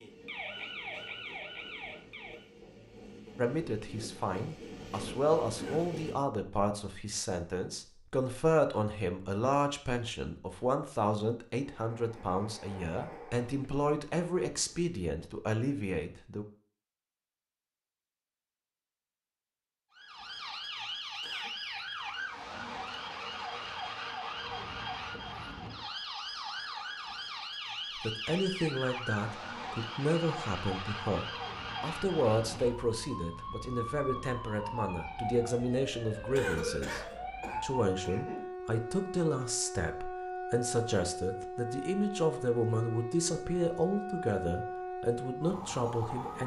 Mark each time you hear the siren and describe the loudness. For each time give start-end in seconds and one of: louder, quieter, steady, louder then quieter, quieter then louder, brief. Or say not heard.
0.0-2.5 brief
19.9-46.4 steady.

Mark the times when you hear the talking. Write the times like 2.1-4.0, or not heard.
3.4-16.4, 27.9-46.4.